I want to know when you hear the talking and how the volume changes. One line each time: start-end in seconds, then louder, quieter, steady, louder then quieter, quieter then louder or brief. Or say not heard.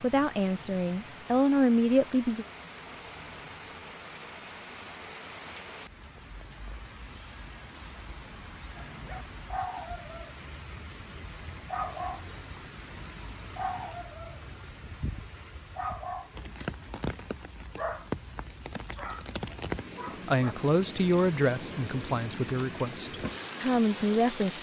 0.0-2.5 brief
20.2-24.5 quieter then louder.